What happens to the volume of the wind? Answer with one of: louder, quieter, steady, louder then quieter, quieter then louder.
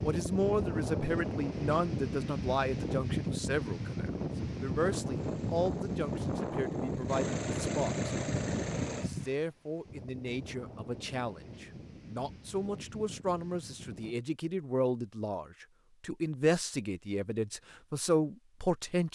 quieter.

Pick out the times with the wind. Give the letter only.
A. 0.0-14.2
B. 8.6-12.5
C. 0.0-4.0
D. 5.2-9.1
A.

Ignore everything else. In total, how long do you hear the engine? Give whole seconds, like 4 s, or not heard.
4 s.